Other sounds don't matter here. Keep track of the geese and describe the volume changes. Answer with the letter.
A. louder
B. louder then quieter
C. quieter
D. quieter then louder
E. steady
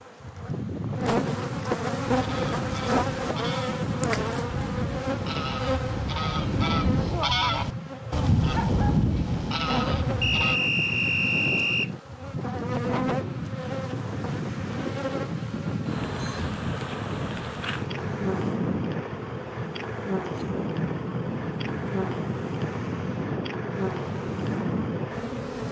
A.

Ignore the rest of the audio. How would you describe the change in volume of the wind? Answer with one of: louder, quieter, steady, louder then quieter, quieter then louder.
steady.